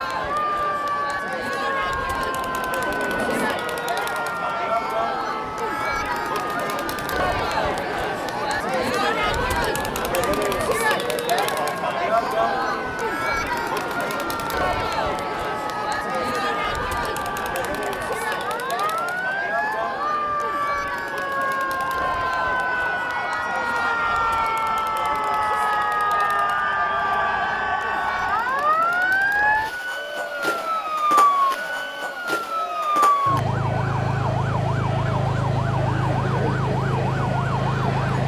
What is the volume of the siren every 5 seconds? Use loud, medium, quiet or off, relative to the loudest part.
medium, medium, medium, medium, loud, loud, loud, loud.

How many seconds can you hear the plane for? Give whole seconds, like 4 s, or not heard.
2 s.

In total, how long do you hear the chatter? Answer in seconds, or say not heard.
38 s.